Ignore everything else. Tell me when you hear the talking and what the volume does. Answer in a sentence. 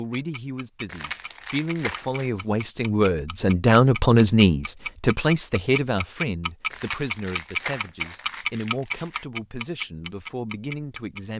The talking can be heard from 0.0 to 11.3 s, getting louder then quieter.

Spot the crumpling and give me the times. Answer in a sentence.
You can hear the crumpling from 0.8 to 2.3 s and from 6.7 to 9.2 s.